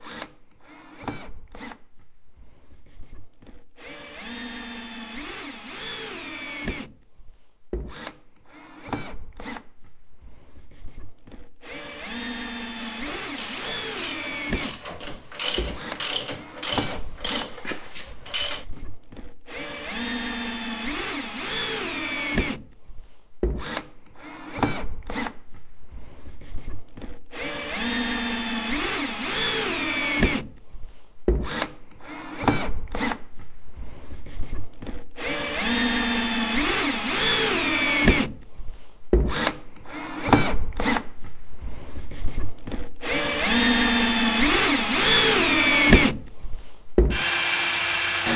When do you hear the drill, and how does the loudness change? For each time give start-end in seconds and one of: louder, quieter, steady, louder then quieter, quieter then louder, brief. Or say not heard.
0.0-48.3 louder.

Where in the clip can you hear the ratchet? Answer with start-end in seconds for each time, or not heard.
12.8-18.9.